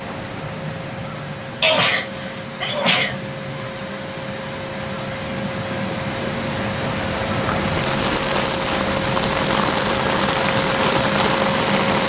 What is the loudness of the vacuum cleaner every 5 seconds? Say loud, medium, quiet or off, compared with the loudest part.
medium, loud, loud.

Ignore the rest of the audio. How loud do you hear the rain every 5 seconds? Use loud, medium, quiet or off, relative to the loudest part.
quiet, loud, loud.